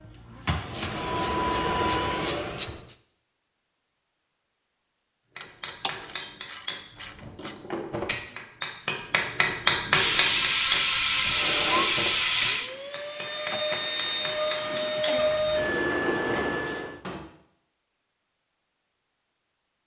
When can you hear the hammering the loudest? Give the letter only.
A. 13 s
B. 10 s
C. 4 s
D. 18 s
B.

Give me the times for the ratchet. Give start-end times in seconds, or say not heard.
0.7-3.0, 5.4-7.5, 9.9-12.7, 15.2-16.9.